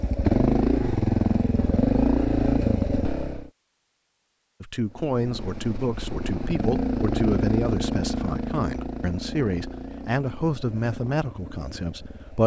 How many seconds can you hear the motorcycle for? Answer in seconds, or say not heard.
11 s.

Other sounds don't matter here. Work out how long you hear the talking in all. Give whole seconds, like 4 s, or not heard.
8 s.